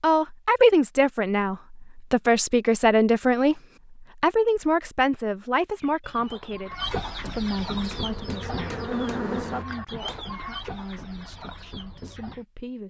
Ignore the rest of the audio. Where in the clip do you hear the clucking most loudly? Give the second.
7 s.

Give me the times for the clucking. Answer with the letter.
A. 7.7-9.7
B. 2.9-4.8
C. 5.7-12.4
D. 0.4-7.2
C.